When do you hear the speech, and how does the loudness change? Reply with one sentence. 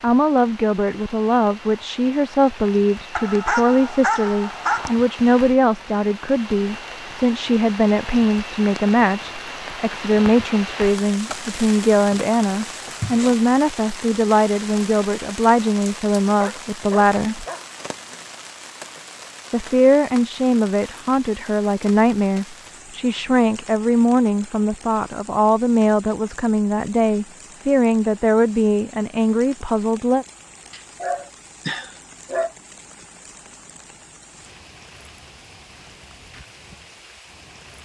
The speech can be heard from 0.0 to 17.4 s, at a steady volume; and from 19.5 to 30.2 s, at a steady volume.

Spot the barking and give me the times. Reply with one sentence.
The barking can be heard from 3.1 to 5.0 s, from 16.4 to 18.2 s and from 30.7 to 32.5 s.